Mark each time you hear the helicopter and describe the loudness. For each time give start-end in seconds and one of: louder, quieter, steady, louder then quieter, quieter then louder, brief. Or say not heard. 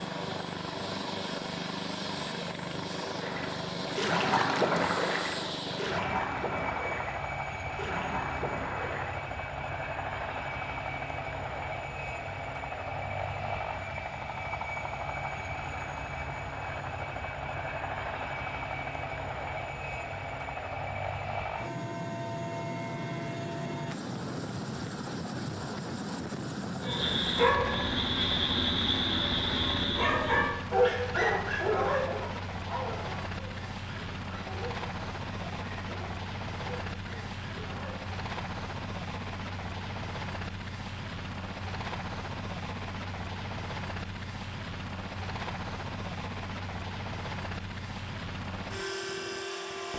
0.0-49.9 steady.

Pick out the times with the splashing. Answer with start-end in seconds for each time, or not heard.
3.1-9.2.